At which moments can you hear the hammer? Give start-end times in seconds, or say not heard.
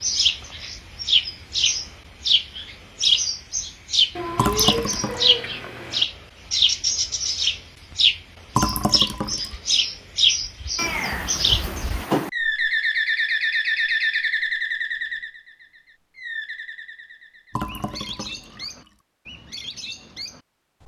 not heard.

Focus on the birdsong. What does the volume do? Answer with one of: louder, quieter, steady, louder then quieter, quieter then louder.
quieter.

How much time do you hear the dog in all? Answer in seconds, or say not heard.
not heard.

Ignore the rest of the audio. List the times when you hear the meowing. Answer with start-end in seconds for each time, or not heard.
4.2-6.0, 10.8-12.3.